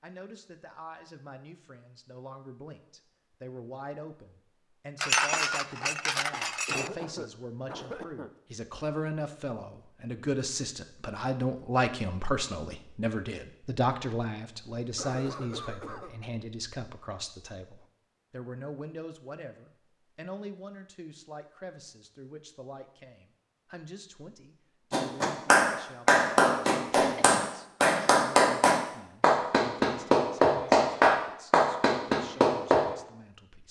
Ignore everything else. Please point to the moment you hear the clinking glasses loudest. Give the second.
5 s.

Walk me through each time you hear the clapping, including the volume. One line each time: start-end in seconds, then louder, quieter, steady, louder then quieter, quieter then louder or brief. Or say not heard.
24.9-32.9 steady.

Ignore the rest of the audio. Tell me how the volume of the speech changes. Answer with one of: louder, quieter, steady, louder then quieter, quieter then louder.
louder then quieter.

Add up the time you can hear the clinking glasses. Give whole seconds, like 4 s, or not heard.
2 s.